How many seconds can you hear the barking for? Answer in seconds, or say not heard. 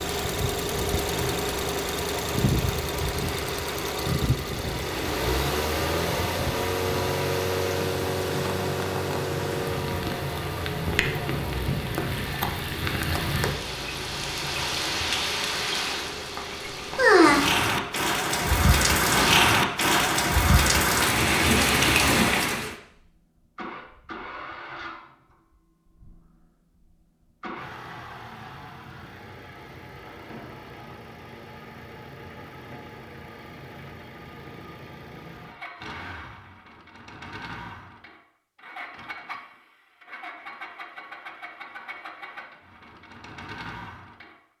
not heard.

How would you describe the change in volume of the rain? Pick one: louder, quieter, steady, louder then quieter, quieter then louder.
louder.